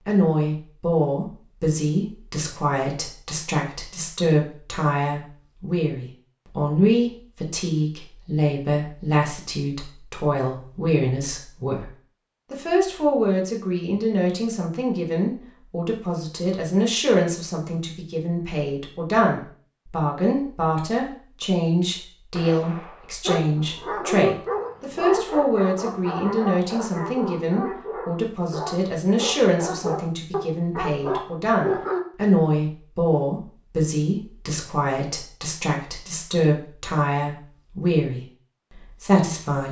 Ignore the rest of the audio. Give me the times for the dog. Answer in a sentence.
You can hear the dog from 23.2 to 32.0 s.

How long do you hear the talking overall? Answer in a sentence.
You can hear the talking for 39 seconds altogether.